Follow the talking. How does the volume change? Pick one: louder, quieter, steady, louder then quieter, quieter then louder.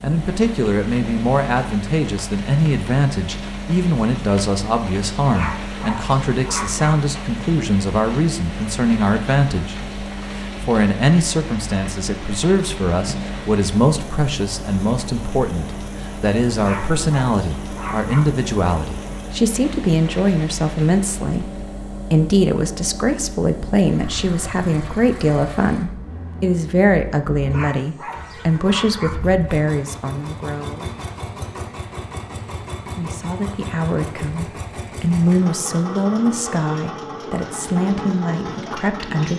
steady.